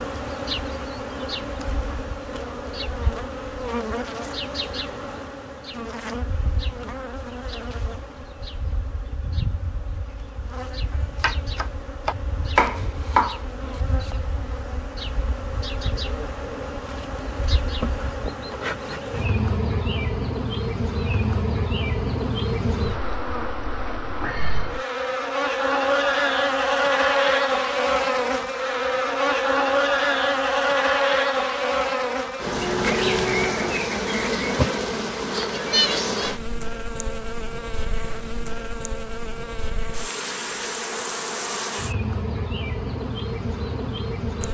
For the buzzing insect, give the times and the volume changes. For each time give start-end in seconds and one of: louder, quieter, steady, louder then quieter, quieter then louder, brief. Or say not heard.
0.0-44.4 louder then quieter.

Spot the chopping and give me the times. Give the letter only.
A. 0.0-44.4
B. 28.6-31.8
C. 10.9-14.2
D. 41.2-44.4
C.